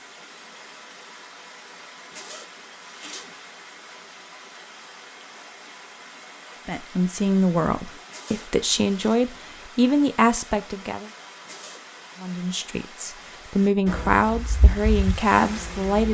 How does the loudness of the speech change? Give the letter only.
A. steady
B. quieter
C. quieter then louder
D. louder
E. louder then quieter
C.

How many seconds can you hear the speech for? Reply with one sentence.
The speech can be heard for 8 seconds in total.